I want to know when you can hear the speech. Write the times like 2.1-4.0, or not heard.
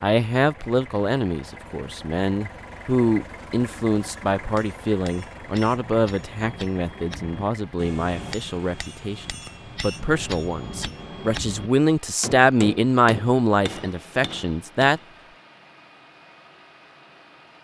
0.0-15.0.